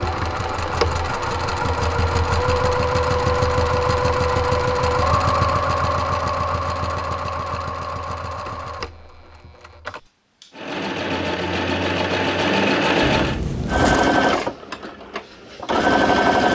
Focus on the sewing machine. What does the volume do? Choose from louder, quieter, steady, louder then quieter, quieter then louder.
quieter then louder.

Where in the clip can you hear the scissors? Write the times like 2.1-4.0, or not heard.
13.0-14.1.